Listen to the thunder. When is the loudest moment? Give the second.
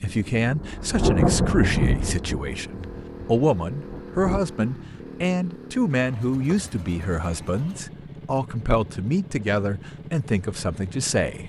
1 s.